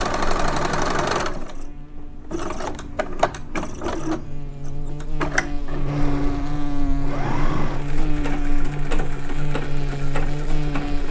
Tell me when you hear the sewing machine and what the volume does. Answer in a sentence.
The sewing machine can be heard from 0.0 to 11.0 s, getting quieter.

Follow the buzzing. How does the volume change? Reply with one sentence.
The volume of the buzzing goes up.